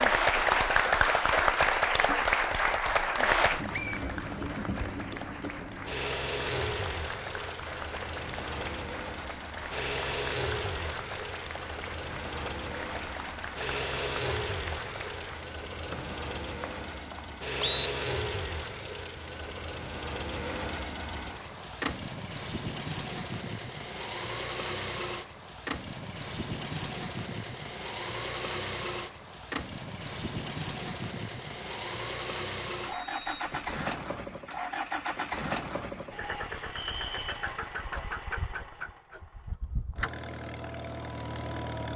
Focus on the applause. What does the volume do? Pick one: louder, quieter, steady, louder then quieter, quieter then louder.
quieter.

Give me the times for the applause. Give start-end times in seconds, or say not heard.
0.0-15.6.